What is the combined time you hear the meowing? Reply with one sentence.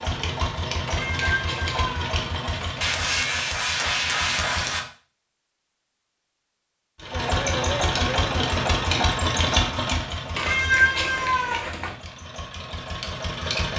You can hear the meowing for 4 seconds altogether.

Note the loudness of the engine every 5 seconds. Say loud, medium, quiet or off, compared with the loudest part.
medium, loud, medium.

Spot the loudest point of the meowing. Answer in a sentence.
The loudest moment of the meowing is at 11 seconds.